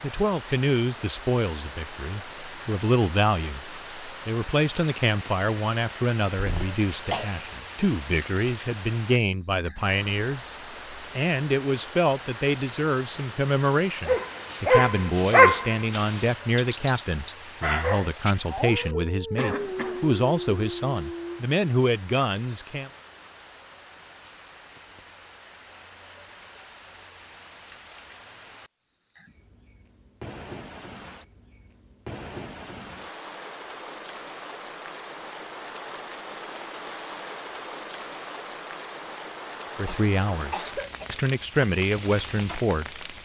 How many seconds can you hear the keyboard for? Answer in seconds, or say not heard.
not heard.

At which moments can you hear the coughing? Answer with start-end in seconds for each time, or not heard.
6.3-7.3, 19.4-20.0, 39.9-41.2.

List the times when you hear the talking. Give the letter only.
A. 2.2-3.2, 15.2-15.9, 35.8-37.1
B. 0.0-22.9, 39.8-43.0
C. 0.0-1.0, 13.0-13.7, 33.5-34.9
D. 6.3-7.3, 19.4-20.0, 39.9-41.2
B.